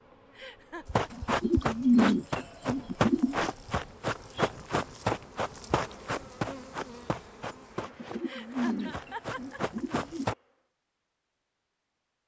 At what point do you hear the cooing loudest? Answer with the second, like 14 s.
2 s.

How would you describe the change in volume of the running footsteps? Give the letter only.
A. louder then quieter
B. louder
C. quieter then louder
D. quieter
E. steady
D.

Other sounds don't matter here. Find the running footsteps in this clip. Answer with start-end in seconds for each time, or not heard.
0.8-10.3.